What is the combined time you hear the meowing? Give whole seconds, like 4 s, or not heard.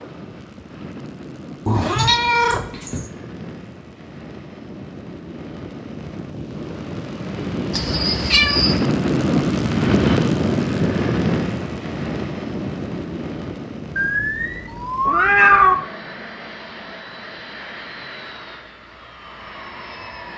4 s.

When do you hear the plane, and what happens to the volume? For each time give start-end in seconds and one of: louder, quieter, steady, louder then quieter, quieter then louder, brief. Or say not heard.
0.0-20.3 louder then quieter.